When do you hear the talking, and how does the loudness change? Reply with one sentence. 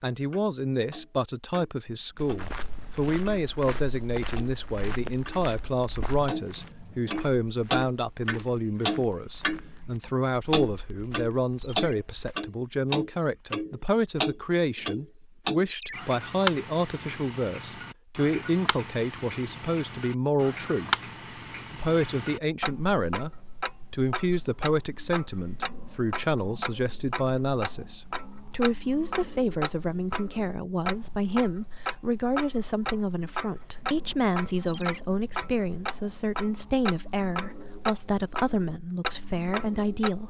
The talking can be heard from 0.0 to 20.9 s, at a steady volume; briefly from 21.7 to 23.3 s; and from 23.9 to 40.2 s, at a steady volume.